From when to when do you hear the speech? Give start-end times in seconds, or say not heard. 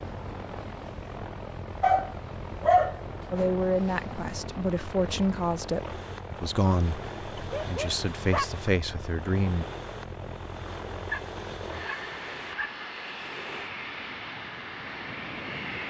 3.3-9.7.